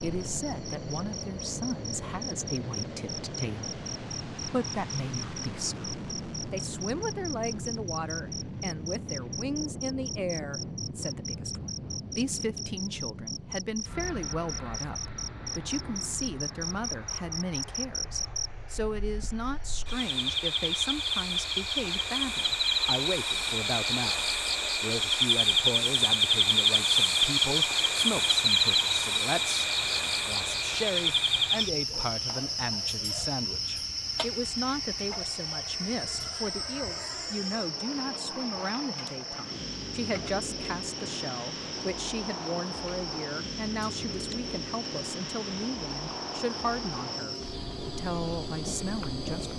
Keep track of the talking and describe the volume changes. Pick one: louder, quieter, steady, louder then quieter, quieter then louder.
steady.